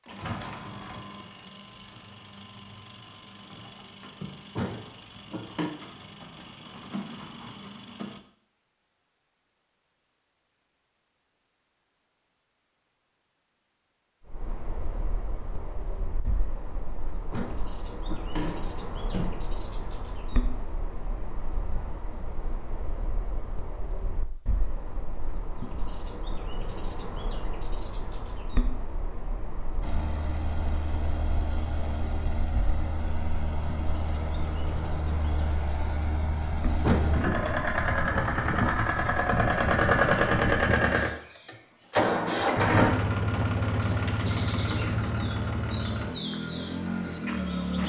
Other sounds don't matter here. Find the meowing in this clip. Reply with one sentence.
You can't hear the meowing here.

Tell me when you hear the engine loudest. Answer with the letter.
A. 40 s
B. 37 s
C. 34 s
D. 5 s
A.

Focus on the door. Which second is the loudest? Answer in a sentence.
The volume of the door peaks at 37 seconds.